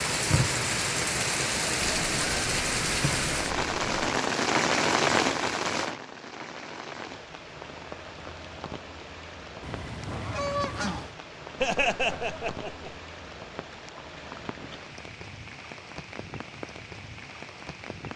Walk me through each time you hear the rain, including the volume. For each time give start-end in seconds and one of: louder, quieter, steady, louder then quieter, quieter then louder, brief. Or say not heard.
0.0-18.1 quieter.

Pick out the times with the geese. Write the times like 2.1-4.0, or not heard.
1.8-4.2, 9.6-11.2.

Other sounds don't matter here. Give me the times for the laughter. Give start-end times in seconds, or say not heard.
11.6-12.9.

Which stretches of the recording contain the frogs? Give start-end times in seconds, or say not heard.
not heard.